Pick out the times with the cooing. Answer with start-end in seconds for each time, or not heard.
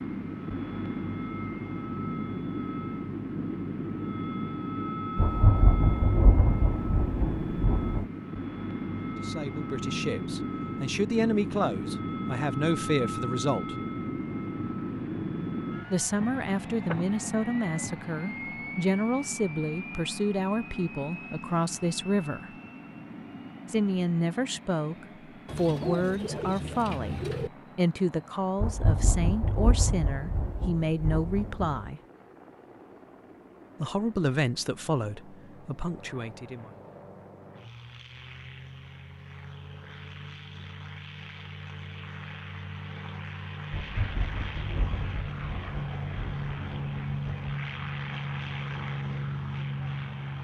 25.4-27.5.